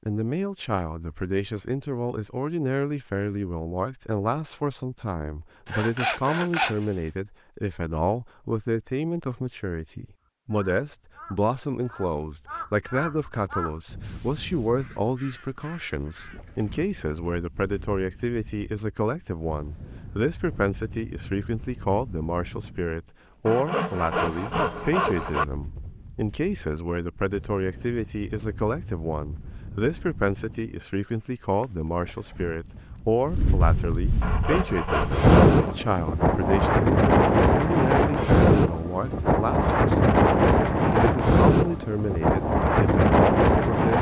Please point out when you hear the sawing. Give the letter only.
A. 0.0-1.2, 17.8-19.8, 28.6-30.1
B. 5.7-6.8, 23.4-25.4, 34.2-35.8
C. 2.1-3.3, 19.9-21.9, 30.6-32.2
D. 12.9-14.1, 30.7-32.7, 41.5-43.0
B.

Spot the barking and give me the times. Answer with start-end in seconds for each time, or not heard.
not heard.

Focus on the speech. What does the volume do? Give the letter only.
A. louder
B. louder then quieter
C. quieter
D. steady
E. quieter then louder
D.